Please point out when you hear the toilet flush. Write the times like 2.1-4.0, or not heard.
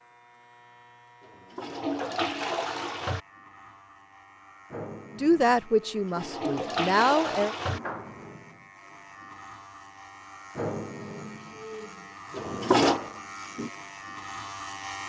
1.2-3.2, 5.8-7.8, 12.3-13.0.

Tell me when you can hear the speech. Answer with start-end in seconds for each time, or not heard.
5.2-7.5.